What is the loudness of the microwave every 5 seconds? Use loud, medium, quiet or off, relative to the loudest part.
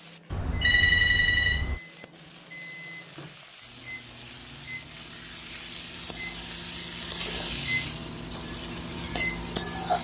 medium, loud.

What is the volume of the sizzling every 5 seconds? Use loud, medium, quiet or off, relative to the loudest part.
quiet, loud.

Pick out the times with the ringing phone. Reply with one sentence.
The ringing phone can be heard from 0.3 to 1.8 s.